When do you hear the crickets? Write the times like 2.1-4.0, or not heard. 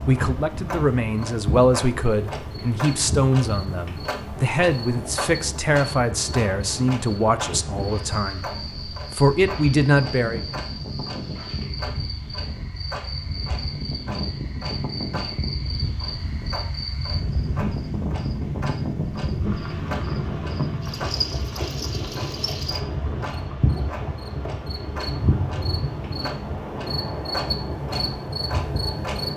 0.0-29.3.